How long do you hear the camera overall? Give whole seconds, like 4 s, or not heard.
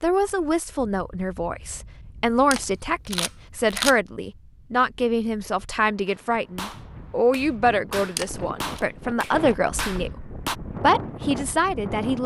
2 s.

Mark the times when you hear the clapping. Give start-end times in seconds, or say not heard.
6.0-10.6.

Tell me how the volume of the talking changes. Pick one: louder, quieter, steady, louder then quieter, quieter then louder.
steady.